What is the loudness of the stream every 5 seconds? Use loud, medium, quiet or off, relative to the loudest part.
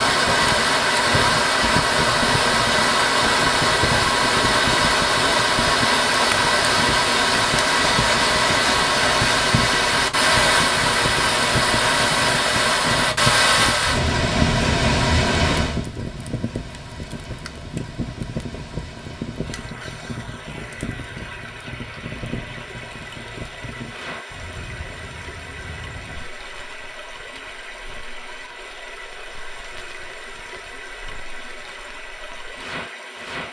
loud, loud, loud, medium, quiet, quiet, quiet.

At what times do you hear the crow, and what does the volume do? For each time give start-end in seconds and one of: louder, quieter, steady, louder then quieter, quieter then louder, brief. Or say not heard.
not heard.